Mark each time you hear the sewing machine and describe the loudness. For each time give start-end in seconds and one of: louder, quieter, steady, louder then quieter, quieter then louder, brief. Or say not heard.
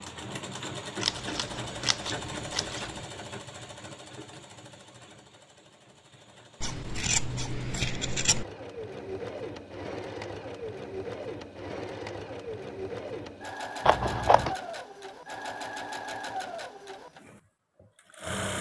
0.0-18.5 quieter then louder.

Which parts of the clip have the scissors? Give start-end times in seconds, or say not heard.
1.0-2.9, 6.6-8.4, 13.8-14.6.